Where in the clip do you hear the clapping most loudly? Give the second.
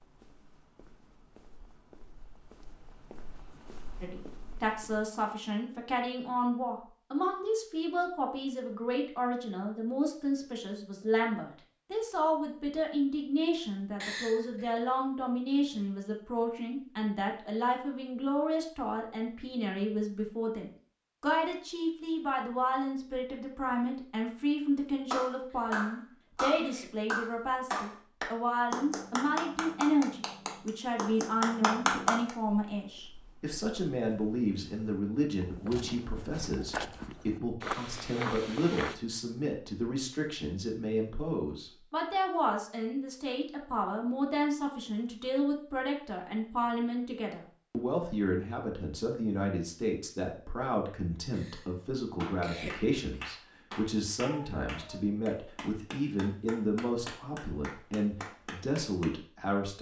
32 s.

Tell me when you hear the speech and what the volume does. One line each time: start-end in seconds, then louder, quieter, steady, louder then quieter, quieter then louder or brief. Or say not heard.
4.0-59.7 steady.